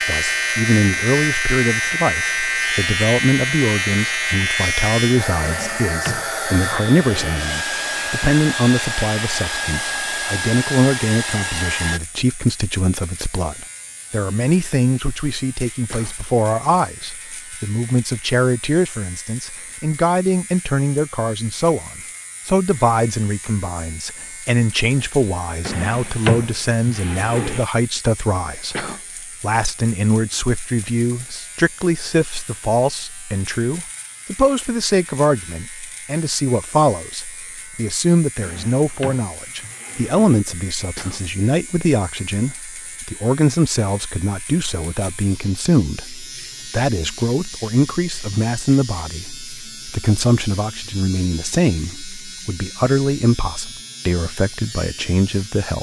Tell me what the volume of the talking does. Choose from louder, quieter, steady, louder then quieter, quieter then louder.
steady.